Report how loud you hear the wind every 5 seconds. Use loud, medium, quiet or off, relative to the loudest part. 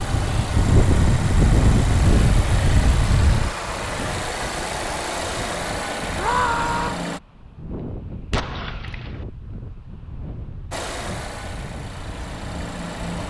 loud, quiet, quiet.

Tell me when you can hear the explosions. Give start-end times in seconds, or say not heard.
8.3-9.2.